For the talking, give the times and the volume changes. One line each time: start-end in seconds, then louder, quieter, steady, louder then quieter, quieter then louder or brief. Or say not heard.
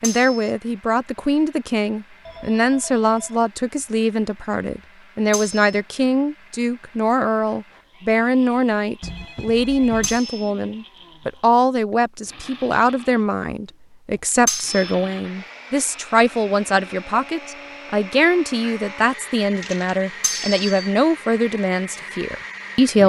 0.0-23.0 steady.